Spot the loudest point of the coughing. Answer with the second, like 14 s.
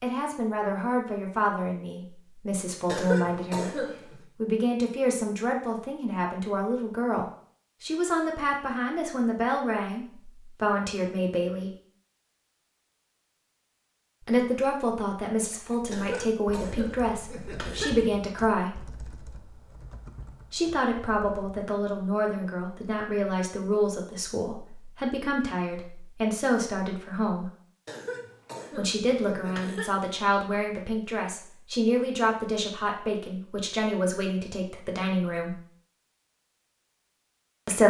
3 s.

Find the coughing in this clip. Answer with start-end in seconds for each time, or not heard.
2.9-4.2, 15.9-17.9, 27.9-29.9.